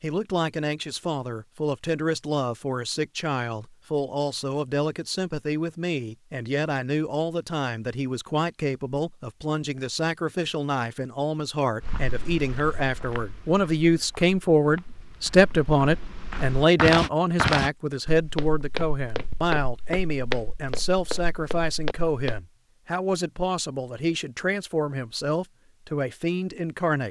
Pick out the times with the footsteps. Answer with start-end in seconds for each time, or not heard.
11.8-22.4.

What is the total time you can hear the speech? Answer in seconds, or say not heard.
27 s.